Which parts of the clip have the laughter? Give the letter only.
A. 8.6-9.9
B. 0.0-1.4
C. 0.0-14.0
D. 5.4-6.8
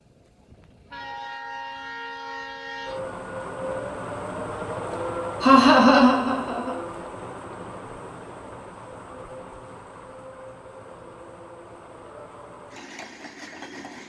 D.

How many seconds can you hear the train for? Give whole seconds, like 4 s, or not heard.
14 s.